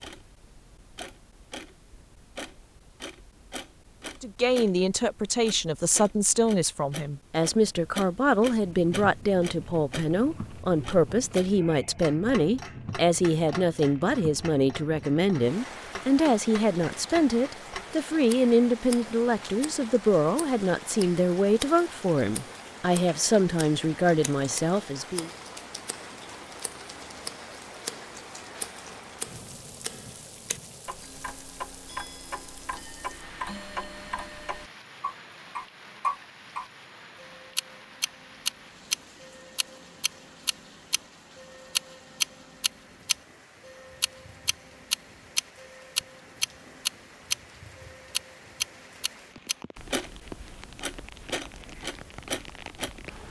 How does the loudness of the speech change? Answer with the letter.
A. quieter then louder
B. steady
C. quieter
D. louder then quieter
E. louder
B.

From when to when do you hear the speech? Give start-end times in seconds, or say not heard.
4.2-25.3.